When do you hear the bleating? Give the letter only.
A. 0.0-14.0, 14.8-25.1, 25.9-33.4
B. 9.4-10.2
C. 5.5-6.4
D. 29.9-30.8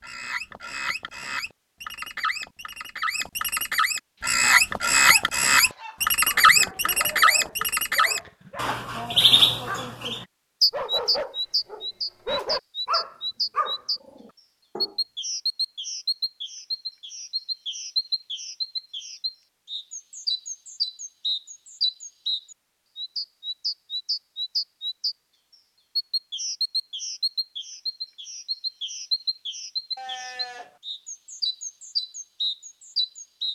D.